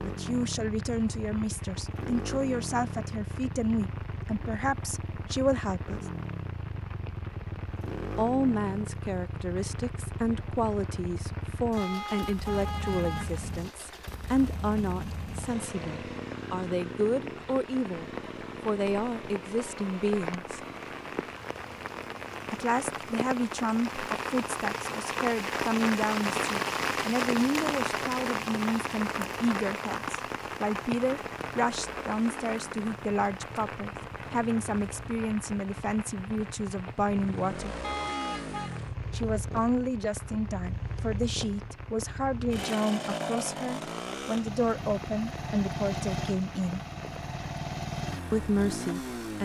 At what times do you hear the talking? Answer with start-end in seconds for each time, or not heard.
0.0-6.0, 8.2-20.6, 22.5-37.8, 39.1-46.8, 48.3-49.4.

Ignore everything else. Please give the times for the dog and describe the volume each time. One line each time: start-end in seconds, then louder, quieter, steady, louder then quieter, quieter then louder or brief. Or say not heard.
not heard.